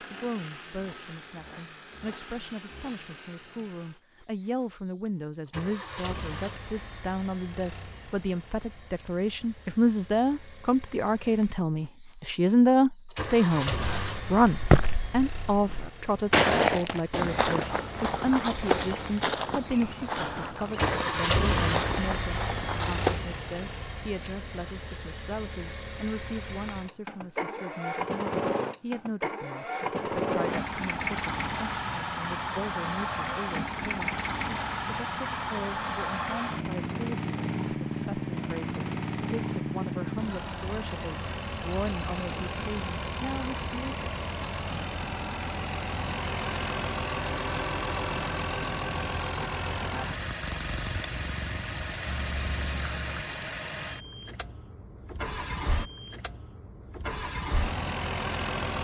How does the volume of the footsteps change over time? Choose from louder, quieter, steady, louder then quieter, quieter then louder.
quieter.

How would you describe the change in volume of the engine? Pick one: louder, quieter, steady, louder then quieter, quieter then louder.
louder.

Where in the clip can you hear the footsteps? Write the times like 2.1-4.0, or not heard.
13.8-23.2.